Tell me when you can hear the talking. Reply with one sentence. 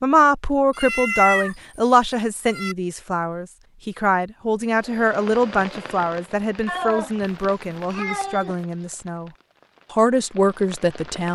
The talking can be heard from 0.0 to 9.3 s and from 9.9 to 11.3 s.